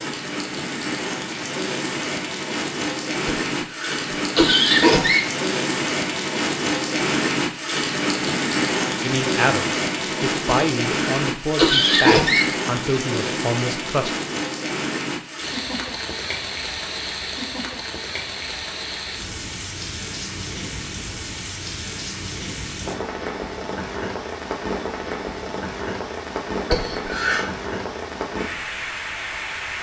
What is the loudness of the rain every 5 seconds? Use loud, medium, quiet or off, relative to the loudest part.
loud, loud, loud, medium, medium, medium.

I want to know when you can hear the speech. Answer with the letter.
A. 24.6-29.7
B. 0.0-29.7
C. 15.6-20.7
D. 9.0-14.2
D.